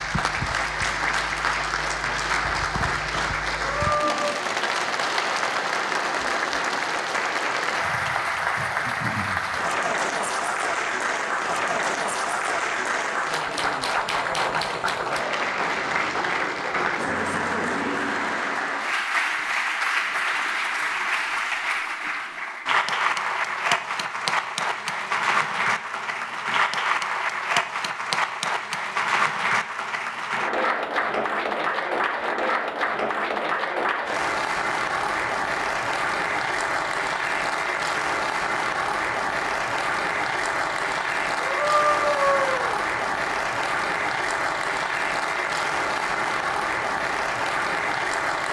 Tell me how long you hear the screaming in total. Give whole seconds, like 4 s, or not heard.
2 s.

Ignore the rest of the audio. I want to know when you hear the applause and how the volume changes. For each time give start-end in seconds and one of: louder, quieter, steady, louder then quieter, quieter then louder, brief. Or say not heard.
0.0-48.4 steady.